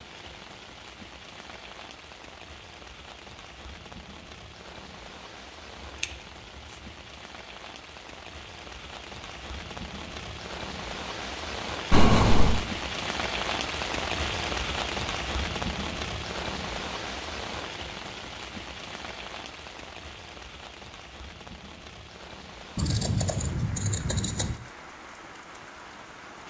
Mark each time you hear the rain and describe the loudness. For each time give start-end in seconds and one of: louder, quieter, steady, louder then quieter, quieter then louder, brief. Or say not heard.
0.0-26.4 louder then quieter.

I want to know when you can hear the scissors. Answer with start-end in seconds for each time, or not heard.
11.9-12.7, 22.8-24.6.